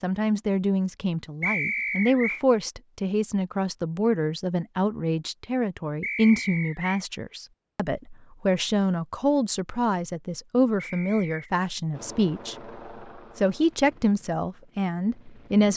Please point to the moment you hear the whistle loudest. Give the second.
2 s.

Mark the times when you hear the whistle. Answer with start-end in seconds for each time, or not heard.
1.4-2.4, 6.0-7.0, 10.8-11.5.